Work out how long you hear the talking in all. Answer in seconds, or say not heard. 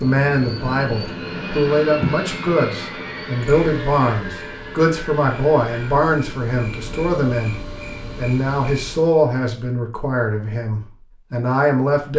12 s.